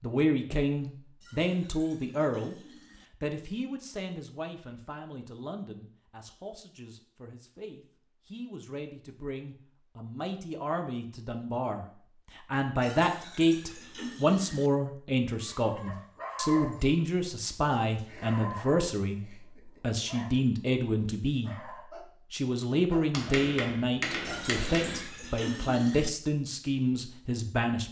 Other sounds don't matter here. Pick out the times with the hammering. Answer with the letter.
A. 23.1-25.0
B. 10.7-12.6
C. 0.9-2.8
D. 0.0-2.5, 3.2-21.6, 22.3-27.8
A.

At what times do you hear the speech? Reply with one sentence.
The speech can be heard from 0.0 to 2.5 s, from 3.2 to 21.6 s and from 22.3 to 27.8 s.